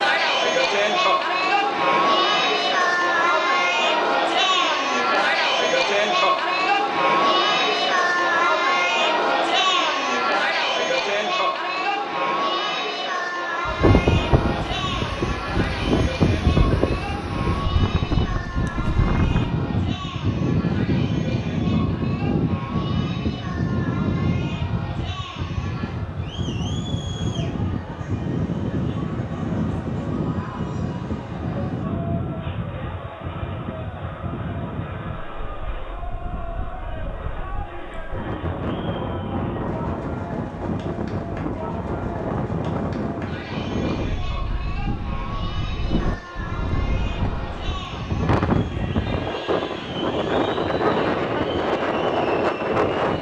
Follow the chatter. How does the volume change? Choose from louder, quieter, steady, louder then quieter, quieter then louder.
quieter.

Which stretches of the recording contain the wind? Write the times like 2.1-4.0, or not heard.
13.7-53.1.